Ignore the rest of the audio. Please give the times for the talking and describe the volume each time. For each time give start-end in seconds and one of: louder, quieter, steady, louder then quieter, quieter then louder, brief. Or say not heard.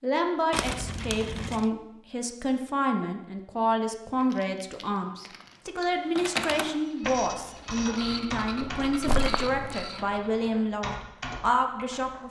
0.0-12.2 steady.